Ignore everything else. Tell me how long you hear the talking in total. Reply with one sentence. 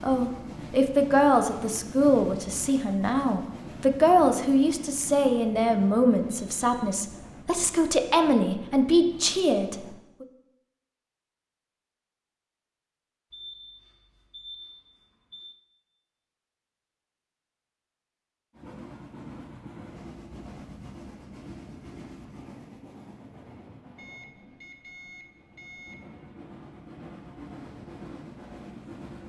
You can hear the talking for 10 seconds altogether.